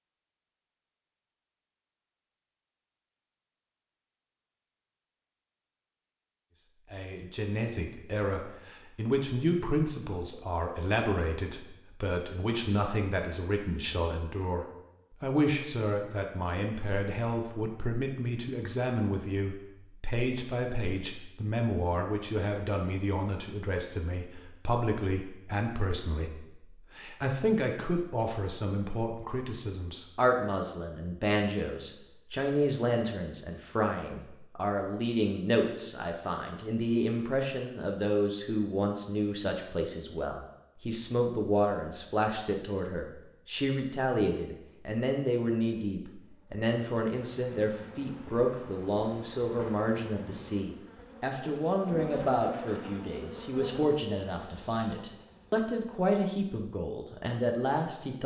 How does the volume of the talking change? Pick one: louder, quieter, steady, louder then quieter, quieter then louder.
steady.